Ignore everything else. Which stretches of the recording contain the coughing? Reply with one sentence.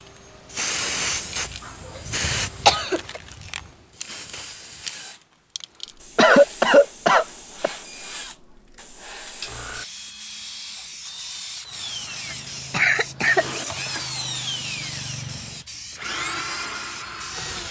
The coughing can be heard from 2.6 to 3.2 s, from 6.2 to 7.7 s and from 12.3 to 13.4 s.